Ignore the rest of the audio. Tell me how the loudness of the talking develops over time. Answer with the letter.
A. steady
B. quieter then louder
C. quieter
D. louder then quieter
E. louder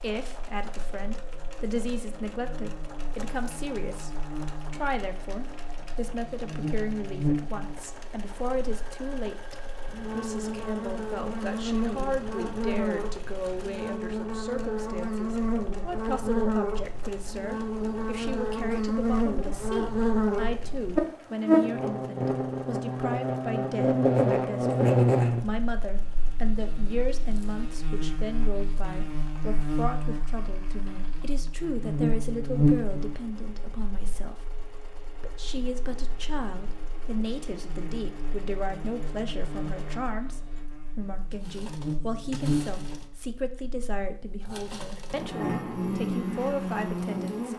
A.